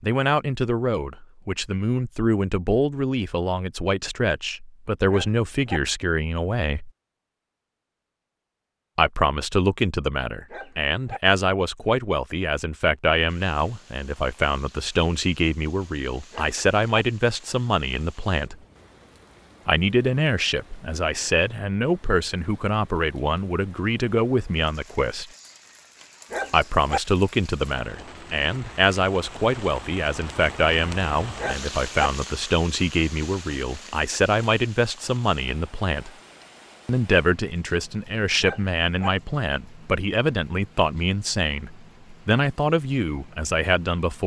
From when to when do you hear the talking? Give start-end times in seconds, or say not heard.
0.0-6.9, 8.9-18.6, 19.6-25.3, 26.5-36.1, 36.9-44.2.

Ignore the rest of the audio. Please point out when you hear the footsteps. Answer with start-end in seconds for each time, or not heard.
not heard.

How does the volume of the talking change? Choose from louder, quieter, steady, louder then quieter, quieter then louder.
steady.